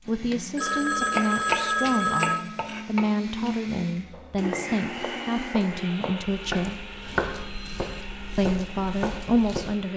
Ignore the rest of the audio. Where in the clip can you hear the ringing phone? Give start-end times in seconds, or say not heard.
0.3-2.4, 7.3-8.1.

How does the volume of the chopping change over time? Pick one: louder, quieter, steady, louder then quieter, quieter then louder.
quieter then louder.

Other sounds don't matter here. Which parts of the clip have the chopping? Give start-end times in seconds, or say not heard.
1.1-9.8.